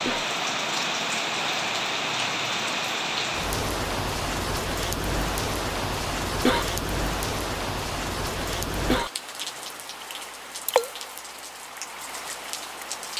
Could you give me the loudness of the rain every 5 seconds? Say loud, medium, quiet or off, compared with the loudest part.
loud, loud, medium.